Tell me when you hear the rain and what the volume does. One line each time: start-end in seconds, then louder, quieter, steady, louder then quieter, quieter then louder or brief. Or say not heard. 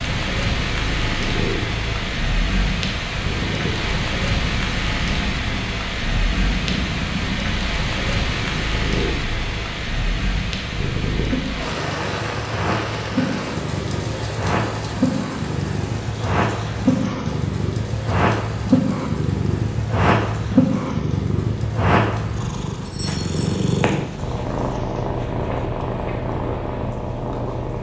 0.0-27.7 quieter.